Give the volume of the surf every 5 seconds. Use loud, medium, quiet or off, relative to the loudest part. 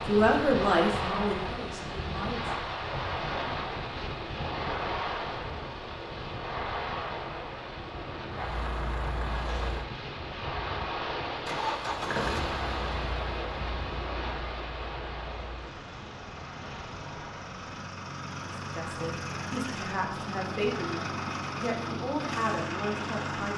loud, loud, loud, medium, off.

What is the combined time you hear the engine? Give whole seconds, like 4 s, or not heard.
15 s.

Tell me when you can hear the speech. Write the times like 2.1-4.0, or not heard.
0.1-2.5, 18.6-23.5.